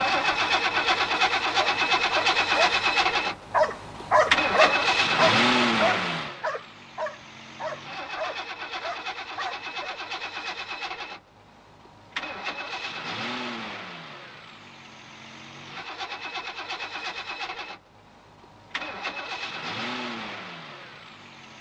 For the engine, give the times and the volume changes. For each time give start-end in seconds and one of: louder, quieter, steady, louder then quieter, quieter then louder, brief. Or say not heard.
0.0-21.5 quieter.